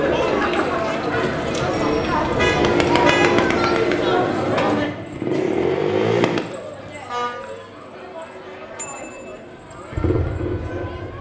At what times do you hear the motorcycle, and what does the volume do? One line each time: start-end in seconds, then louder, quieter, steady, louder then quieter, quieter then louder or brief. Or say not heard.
2.5-6.5 quieter then louder
9.3-11.1 brief.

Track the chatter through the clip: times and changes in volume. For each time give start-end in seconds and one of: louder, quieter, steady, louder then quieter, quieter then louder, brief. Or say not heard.
0.0-11.1 quieter.